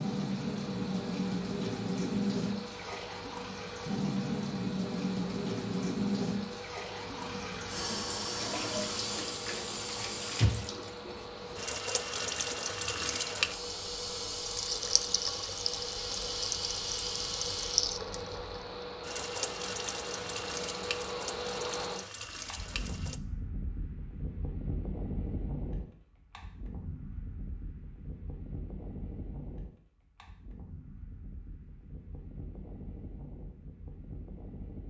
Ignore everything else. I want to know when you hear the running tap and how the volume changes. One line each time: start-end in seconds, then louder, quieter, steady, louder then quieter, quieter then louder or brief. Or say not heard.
0.0-23.2 quieter.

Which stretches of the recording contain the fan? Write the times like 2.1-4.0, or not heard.
0.0-34.8.